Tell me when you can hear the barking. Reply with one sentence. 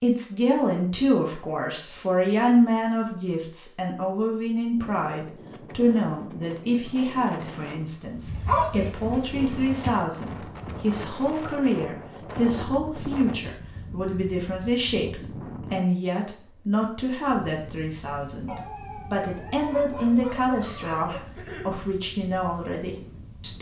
The barking can be heard from 8.2 to 9.8 s and from 18.4 to 21.2 s.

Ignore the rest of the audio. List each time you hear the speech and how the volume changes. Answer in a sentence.
The speech can be heard from 0.0 to 23.5 s, at a steady volume.